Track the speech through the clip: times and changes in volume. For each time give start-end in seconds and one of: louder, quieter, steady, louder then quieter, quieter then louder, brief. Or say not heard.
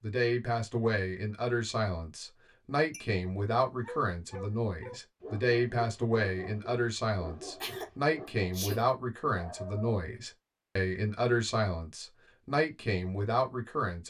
0.0-14.0 steady.